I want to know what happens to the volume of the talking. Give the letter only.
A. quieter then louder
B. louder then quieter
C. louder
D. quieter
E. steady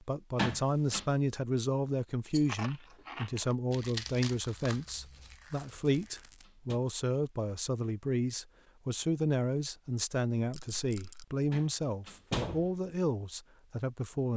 E.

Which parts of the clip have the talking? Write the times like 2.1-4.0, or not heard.
0.0-14.3.